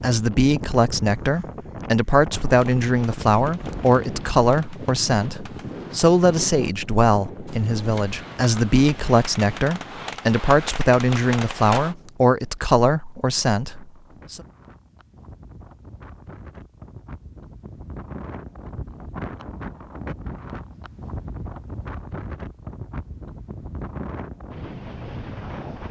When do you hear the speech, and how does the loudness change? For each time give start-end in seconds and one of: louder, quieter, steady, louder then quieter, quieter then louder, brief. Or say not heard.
0.0-14.4 steady.